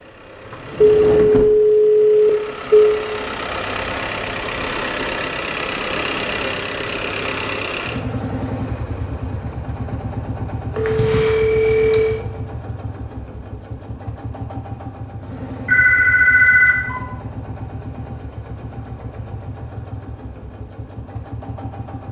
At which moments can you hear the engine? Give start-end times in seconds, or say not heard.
0.0-22.0.